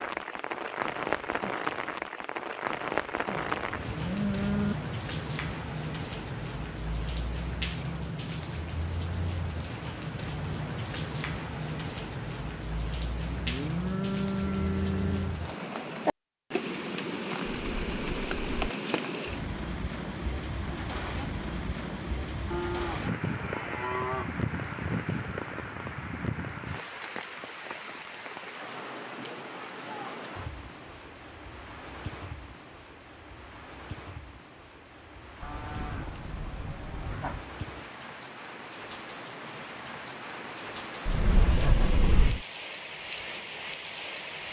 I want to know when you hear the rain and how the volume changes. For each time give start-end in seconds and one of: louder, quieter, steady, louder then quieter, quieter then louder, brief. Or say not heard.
0.0-44.4 quieter.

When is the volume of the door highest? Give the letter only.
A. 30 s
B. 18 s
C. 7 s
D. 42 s
D.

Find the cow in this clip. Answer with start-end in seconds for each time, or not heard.
3.4-4.8, 13.2-15.4, 22.5-24.4, 35.4-37.5.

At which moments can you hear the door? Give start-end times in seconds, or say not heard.
17.4-18.8, 41.0-42.5.